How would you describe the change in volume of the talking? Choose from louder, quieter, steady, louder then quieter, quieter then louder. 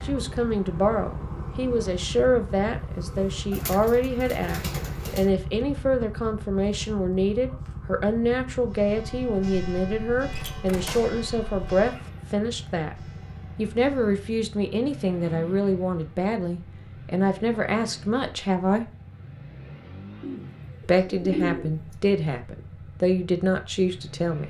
steady.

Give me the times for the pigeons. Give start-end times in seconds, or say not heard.
3.5-5.3, 20.2-21.9.